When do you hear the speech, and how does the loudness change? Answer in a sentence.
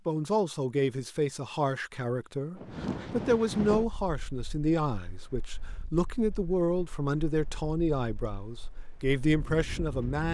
The speech can be heard from 0.1 to 10.2 s, at a steady volume.